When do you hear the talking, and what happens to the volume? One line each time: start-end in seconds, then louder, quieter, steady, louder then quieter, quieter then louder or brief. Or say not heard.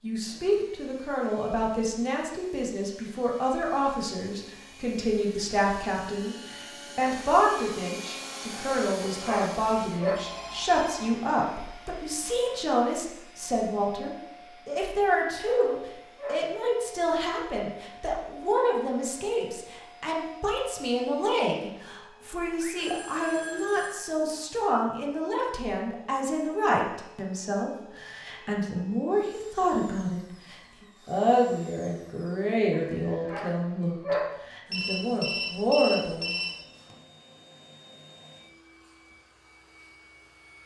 0.0-36.4 steady.